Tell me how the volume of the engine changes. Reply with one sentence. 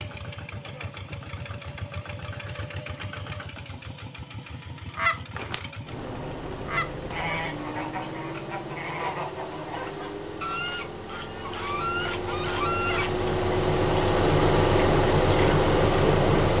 The loudness of the engine goes up.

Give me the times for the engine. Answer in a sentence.
You can hear the engine from 0.0 to 16.5 s.